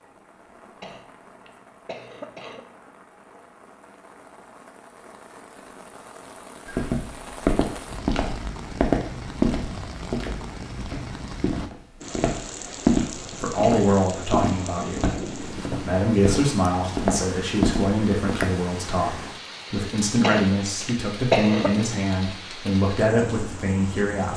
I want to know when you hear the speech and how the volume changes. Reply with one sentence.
The speech can be heard from 13.4 to 24.3 s, at a steady volume.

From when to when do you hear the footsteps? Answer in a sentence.
The footsteps can be heard from 6.7 to 18.5 s.